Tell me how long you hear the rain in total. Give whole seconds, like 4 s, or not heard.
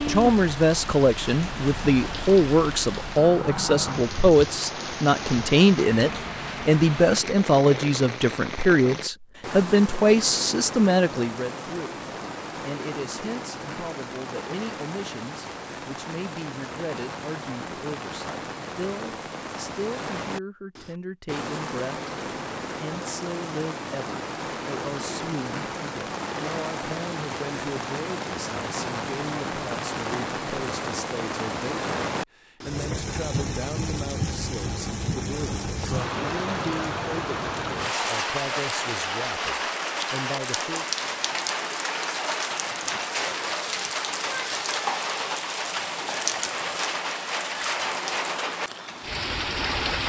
50 s.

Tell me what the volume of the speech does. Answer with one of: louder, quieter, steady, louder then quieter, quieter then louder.
quieter.